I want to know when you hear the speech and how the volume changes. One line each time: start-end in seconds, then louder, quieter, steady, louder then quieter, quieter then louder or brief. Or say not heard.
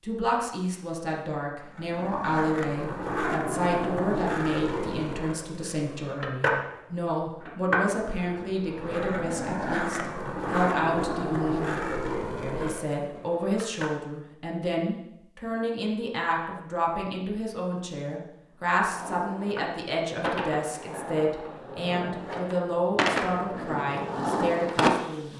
0.0-25.3 steady.